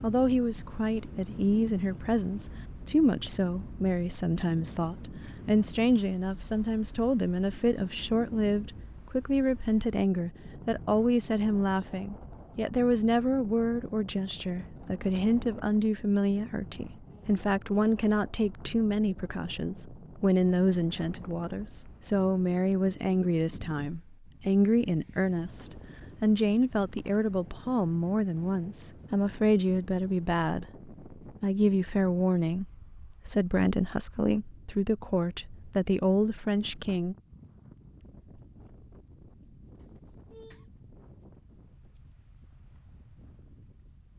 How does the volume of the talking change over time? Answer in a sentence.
The volume of the talking stays about the same.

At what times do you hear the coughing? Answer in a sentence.
The coughing can be heard from 39.8 to 40.6 s.